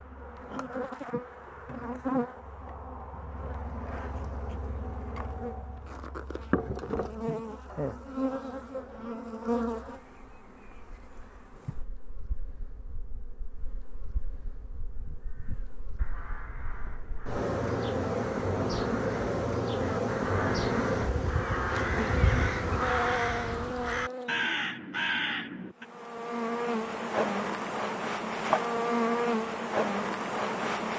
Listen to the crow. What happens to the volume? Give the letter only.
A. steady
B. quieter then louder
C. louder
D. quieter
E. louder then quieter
C.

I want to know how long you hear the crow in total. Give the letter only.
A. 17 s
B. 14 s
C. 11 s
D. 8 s
C.